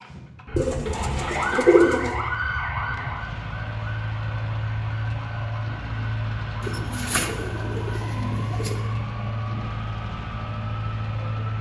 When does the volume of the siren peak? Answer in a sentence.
The loudest moment of the siren is at 2 seconds.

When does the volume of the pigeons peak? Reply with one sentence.
The loudest moment of the pigeons is at 2 seconds.